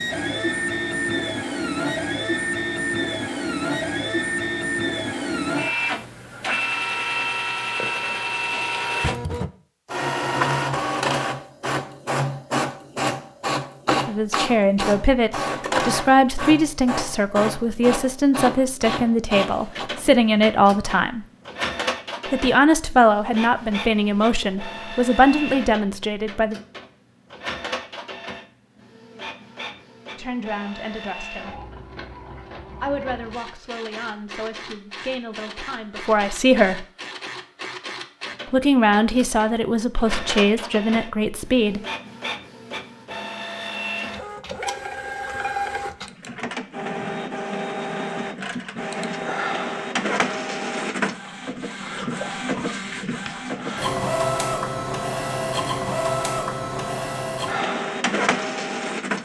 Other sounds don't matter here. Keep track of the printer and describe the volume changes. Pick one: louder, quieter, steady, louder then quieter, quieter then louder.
quieter then louder.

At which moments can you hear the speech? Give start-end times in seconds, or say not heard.
14.1-21.2, 22.3-26.6, 30.1-31.6, 32.8-36.9, 38.5-41.8.